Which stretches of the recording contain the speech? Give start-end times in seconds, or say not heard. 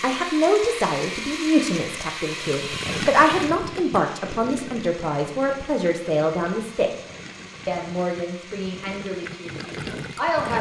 0.0-6.9, 7.7-10.5.